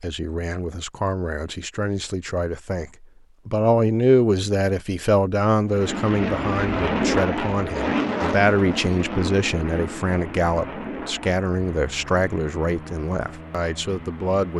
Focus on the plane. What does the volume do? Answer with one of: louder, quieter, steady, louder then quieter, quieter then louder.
quieter.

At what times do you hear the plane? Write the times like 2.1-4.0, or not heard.
5.7-14.5.